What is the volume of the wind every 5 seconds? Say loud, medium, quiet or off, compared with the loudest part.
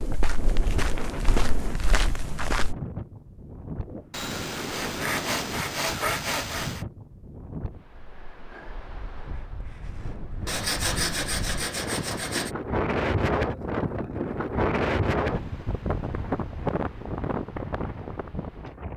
medium, medium, loud, loud.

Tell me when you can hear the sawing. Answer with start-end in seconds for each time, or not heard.
4.1-6.8, 10.4-12.5.